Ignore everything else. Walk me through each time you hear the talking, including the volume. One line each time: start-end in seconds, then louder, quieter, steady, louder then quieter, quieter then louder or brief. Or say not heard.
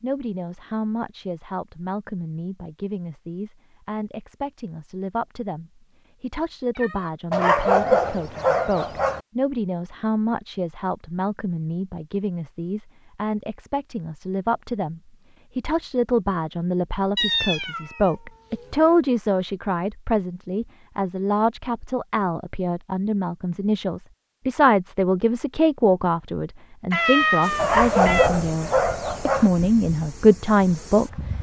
0.0-31.1 louder.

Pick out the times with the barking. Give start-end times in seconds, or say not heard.
7.3-9.2, 27.6-29.5.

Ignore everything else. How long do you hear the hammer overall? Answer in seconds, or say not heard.
not heard.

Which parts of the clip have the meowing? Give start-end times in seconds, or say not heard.
6.8-7.5, 17.1-19.0, 26.9-28.3.